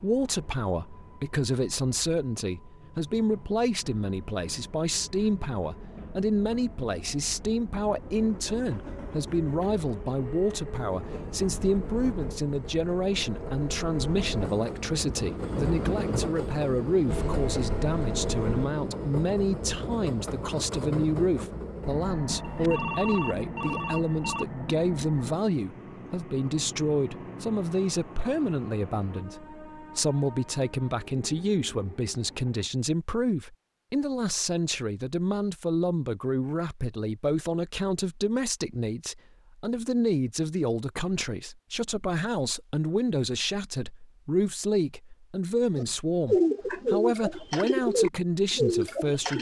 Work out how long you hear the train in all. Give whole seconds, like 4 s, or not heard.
33 s.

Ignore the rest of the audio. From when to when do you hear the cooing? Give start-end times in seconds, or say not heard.
45.8-49.3.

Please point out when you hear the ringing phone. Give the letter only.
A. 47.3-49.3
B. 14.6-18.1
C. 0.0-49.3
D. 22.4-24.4
D.